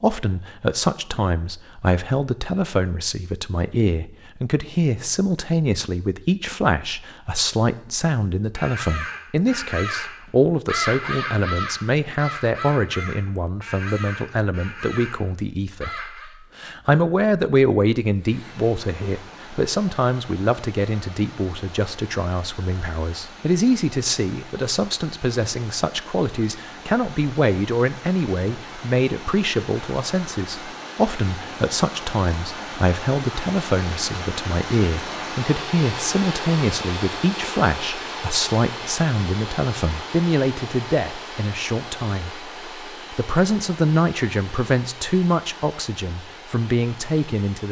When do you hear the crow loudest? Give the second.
11 s.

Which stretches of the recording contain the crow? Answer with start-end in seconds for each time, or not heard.
8.5-16.4.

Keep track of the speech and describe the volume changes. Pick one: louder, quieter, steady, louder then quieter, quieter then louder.
steady.